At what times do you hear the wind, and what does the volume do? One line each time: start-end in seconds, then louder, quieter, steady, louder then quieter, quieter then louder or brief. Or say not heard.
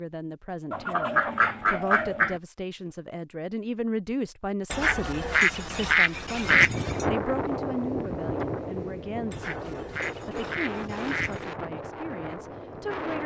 6.4-13.2 quieter.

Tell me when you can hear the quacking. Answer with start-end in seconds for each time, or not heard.
0.7-2.4, 4.7-7.0, 9.3-11.6.